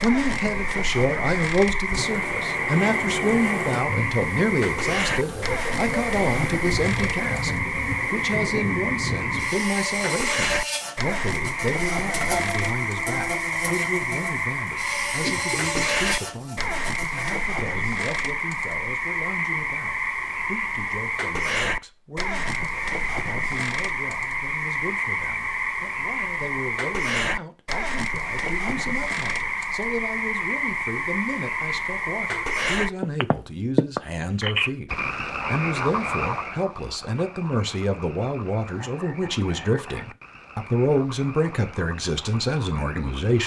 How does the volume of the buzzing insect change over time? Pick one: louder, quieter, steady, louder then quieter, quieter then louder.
steady.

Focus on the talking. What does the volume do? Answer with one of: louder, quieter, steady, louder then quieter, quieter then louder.
quieter then louder.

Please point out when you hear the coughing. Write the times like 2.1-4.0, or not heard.
15.2-16.0.